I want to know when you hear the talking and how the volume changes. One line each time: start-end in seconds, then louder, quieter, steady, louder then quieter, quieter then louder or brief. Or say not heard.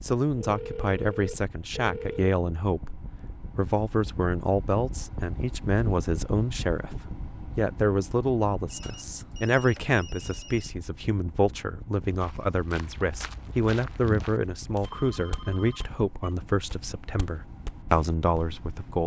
0.0-19.0 steady.